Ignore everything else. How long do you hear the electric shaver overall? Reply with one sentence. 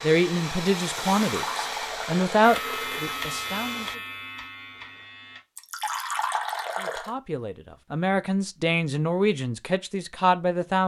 You can hear the electric shaver for 3 seconds altogether.